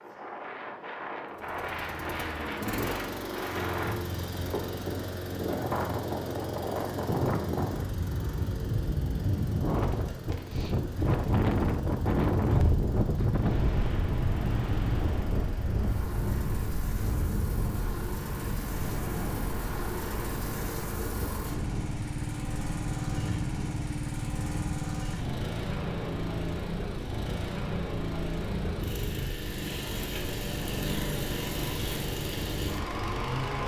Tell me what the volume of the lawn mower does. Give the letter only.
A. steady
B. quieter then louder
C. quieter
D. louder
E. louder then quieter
B.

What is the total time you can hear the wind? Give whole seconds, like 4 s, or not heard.
33 s.